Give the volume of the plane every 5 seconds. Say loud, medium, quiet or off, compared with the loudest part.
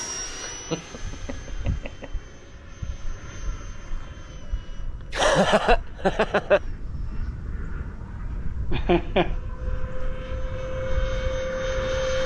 medium, quiet, loud.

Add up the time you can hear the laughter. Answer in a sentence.
You can hear the laughter for 4 seconds altogether.